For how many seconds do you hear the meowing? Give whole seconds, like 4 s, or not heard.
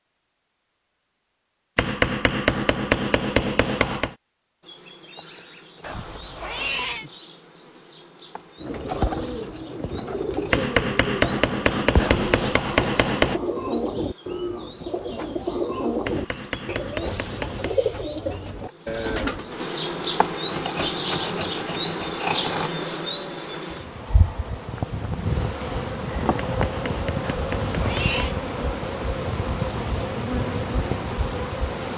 3 s.